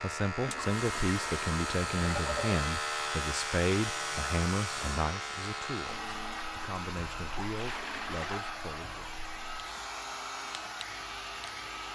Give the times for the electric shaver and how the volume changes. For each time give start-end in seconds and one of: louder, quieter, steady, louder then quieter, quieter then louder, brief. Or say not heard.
0.0-11.8 quieter.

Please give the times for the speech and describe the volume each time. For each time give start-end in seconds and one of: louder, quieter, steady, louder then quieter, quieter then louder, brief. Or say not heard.
0.0-9.1 quieter.